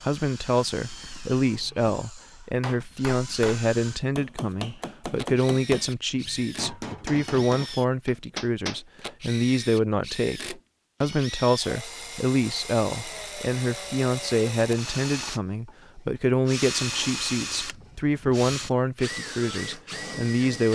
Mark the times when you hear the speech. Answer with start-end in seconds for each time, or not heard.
0.0-20.6.